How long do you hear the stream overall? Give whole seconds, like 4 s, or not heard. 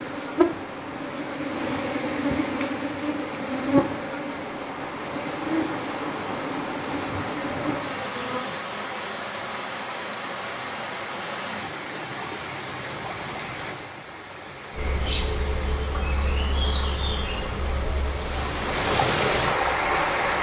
20 s.